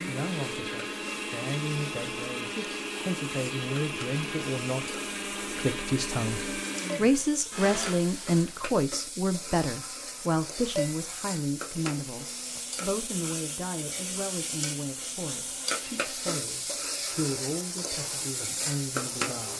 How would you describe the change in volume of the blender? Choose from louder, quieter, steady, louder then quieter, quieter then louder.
quieter.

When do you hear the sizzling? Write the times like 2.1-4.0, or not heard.
0.0-19.5.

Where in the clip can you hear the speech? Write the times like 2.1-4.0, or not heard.
0.0-19.5.